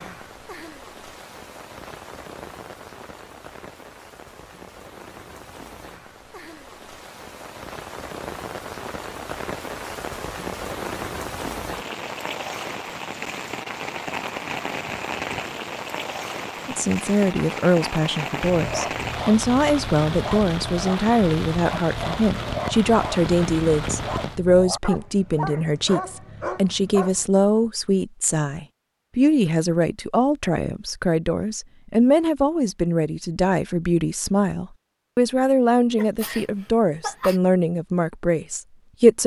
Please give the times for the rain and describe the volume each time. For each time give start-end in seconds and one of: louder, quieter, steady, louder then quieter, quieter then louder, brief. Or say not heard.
0.0-24.4 louder.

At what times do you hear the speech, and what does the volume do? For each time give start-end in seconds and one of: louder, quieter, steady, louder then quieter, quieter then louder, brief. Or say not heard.
16.6-39.2 steady.